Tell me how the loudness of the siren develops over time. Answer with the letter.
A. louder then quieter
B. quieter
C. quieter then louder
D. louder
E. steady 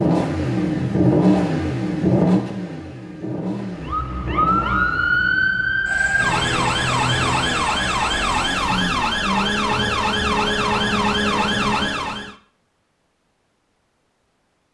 E.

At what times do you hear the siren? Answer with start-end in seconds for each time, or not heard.
3.8-12.3.